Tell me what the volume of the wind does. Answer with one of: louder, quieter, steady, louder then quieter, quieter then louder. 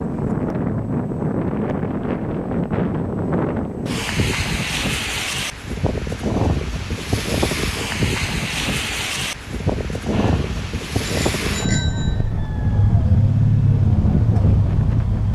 steady.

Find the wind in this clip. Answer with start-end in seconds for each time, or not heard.
0.0-15.3.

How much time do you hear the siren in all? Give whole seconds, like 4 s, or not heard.
not heard.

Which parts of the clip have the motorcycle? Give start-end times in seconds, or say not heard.
10.1-15.3.